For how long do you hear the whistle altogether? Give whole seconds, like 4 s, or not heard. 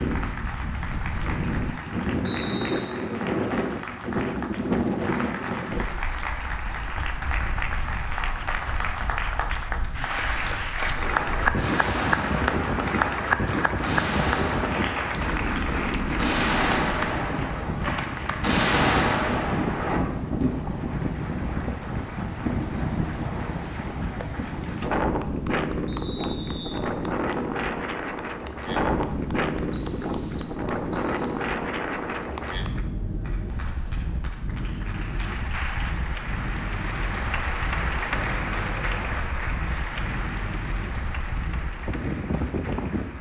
4 s.